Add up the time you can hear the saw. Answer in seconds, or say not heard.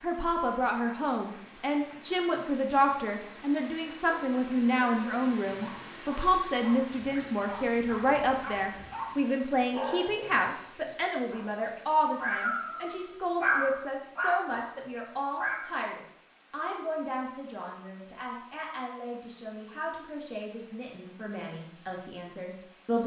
not heard.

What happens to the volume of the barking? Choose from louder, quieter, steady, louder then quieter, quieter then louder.
louder.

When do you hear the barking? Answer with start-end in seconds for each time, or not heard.
4.0-15.7.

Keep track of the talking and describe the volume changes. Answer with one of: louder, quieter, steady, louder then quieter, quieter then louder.
quieter.